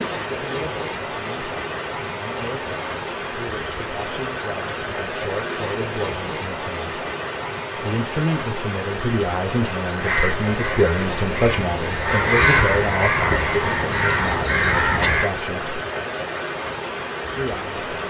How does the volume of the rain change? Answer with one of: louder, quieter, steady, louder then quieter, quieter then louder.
steady.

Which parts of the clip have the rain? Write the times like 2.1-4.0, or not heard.
0.0-18.0.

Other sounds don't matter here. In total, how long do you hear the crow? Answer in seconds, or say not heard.
5 s.